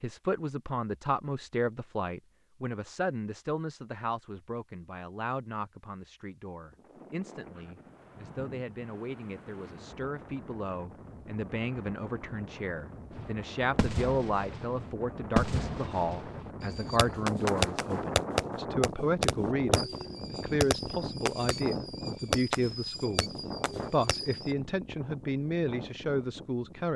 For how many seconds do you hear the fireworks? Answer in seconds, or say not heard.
11 s.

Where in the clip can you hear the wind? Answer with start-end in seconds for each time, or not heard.
6.7-26.9.